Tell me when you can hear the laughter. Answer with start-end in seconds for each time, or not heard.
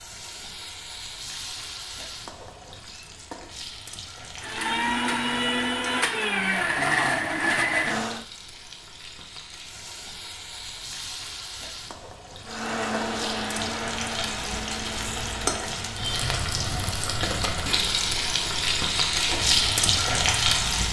not heard.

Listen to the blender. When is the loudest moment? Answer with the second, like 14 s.
7 s.